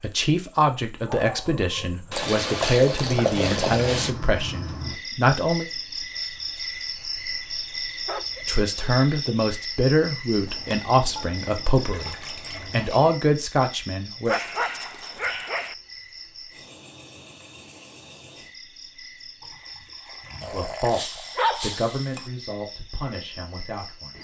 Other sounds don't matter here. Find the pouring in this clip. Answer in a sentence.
The pouring can be heard from 2.1 to 4.1 s, from 10.4 to 13.2 s and from 19.4 to 21.2 s.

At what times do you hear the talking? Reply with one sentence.
You can hear the talking from 0.0 to 5.7 s, from 8.4 to 14.3 s and from 20.5 to 24.1 s.